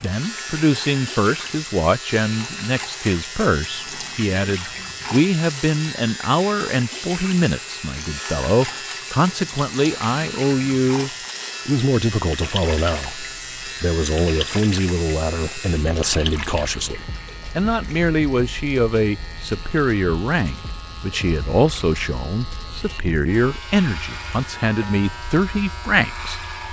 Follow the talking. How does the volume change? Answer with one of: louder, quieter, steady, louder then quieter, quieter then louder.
steady.